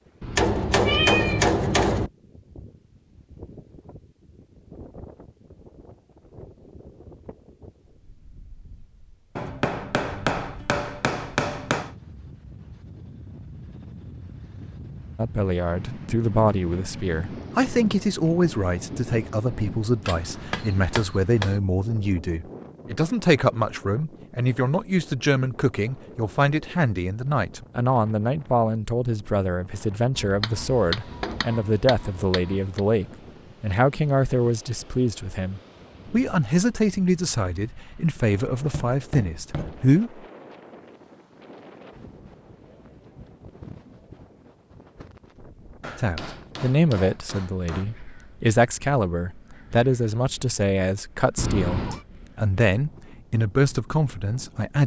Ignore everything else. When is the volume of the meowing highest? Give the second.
1 s.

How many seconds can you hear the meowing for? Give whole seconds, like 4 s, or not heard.
2 s.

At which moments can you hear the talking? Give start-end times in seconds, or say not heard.
15.2-40.2, 46.0-54.8.